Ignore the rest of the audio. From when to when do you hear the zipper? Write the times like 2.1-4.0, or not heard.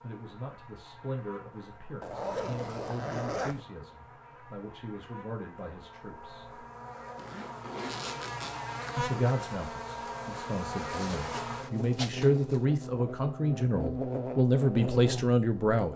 2.0-3.6, 7.2-8.7, 10.8-12.7.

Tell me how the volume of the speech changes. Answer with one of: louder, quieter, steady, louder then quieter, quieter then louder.
louder.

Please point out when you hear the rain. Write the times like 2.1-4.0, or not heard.
not heard.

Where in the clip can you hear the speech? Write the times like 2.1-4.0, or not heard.
0.0-6.7, 8.9-15.9.